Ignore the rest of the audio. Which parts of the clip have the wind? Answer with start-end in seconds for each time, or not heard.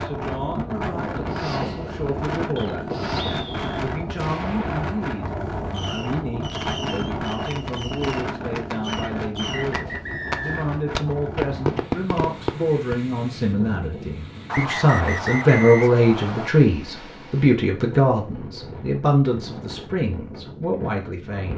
0.0-21.5.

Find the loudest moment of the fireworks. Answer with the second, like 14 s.
12 s.